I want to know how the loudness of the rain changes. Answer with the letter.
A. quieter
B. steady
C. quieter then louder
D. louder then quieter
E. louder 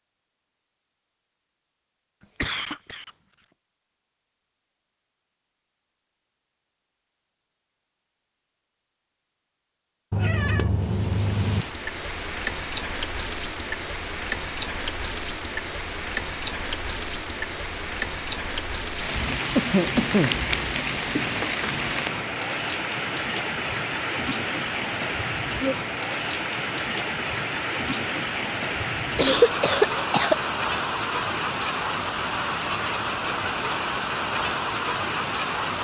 B.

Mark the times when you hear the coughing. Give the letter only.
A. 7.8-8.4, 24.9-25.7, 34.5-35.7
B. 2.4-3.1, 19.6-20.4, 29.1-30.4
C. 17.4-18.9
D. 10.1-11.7
B.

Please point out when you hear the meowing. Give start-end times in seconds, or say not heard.
10.1-11.7.